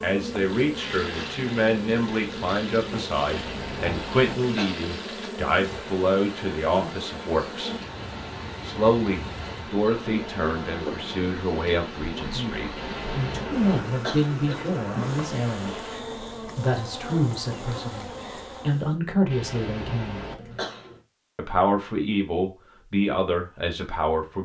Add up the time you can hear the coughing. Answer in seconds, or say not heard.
5 s.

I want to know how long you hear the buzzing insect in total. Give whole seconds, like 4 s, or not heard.
19 s.